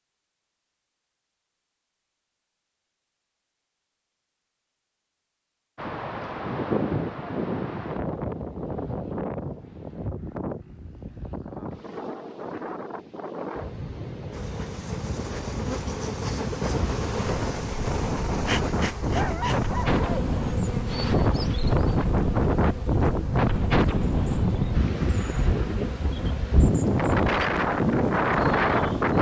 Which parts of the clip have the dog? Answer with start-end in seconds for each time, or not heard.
19.0-20.4.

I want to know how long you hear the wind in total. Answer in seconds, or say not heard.
23 s.